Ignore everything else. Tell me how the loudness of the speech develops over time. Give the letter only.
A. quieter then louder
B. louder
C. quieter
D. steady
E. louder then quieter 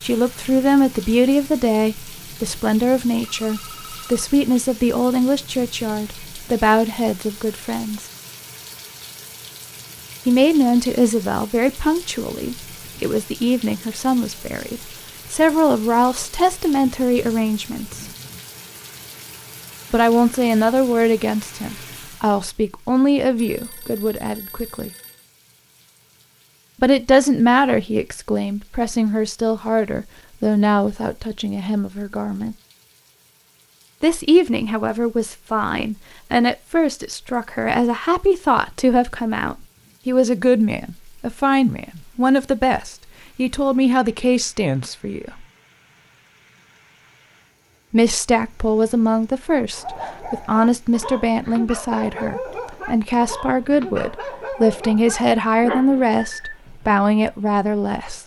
D.